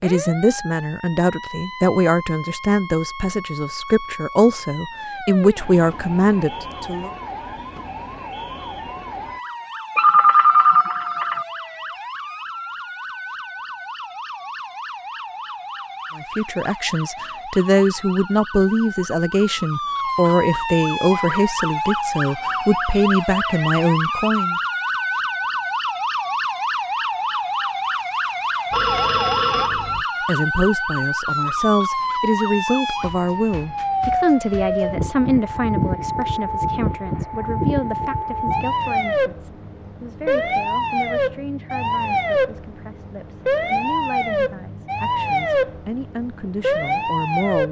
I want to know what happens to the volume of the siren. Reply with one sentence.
The volume of the siren goes up.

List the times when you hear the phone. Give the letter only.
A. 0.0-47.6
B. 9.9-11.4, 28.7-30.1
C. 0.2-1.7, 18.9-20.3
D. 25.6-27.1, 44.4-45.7
B.